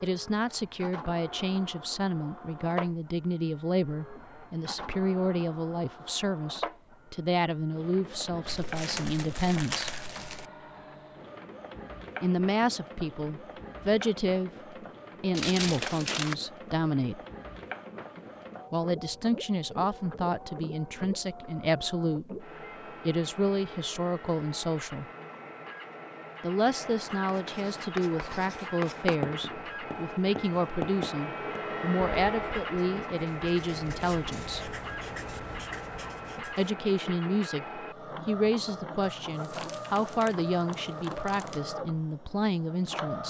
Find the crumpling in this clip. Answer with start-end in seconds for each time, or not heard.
8.4-10.4, 15.3-16.4, 39.2-41.6.